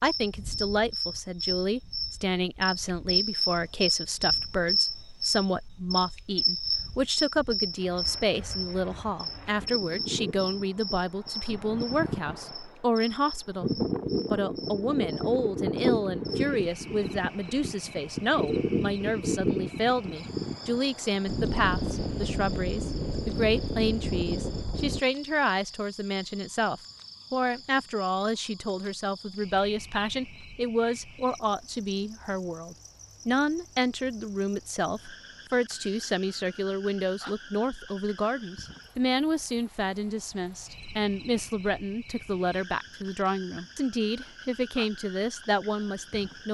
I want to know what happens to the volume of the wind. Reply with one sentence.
The volume of the wind goes up.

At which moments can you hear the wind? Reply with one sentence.
You can hear the wind from 0.0 to 25.0 s.